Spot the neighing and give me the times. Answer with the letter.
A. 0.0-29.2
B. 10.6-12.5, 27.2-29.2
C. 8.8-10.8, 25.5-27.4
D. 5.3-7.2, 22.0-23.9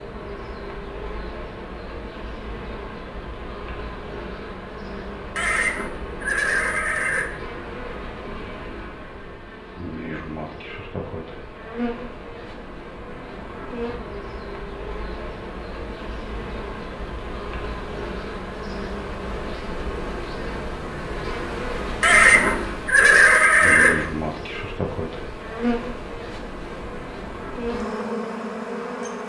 D.